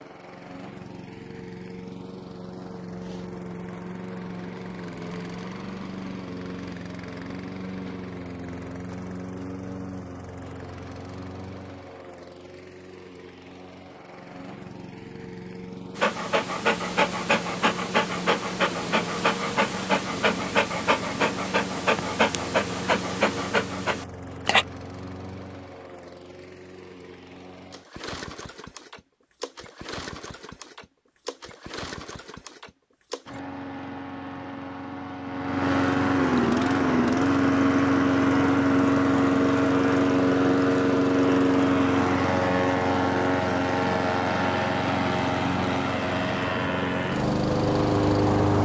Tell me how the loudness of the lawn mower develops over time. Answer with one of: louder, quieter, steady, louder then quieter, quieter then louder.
louder.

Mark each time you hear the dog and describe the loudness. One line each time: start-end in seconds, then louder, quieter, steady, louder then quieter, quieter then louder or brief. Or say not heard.
15.9-24.6 steady.